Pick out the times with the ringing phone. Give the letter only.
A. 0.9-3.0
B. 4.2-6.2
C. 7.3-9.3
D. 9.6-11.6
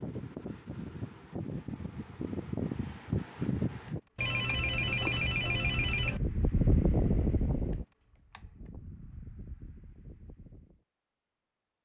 B.